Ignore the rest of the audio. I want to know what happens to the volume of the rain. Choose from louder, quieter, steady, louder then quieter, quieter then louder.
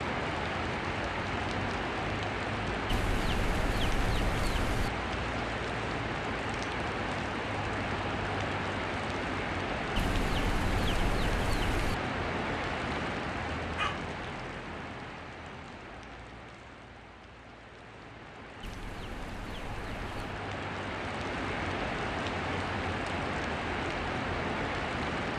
quieter then louder.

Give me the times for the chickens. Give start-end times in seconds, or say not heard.
2.9-4.9, 9.9-11.9, 18.6-20.4.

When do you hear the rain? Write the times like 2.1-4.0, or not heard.
0.0-25.3.